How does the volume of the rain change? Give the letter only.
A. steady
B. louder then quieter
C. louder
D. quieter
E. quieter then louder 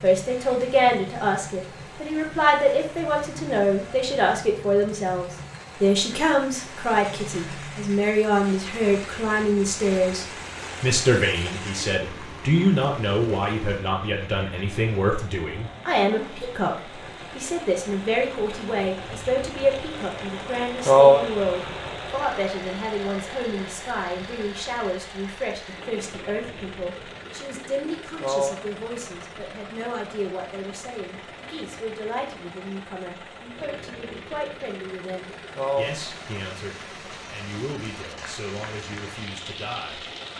B.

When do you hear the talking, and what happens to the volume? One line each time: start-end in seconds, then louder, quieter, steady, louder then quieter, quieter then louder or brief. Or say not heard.
0.0-40.0 quieter.